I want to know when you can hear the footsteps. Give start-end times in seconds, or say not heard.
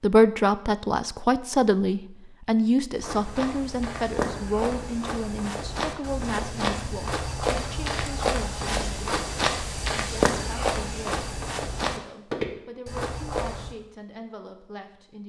3.0-13.8.